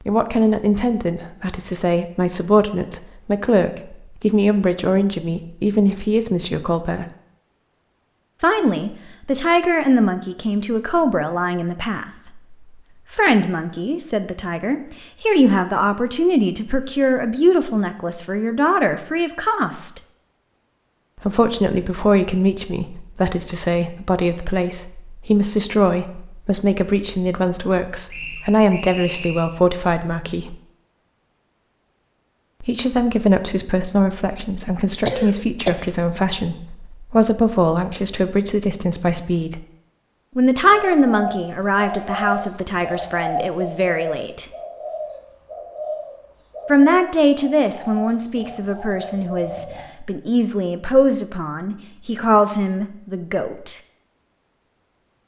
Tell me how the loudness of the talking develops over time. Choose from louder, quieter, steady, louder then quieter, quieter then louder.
steady.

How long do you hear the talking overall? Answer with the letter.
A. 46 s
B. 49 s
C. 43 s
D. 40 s
A.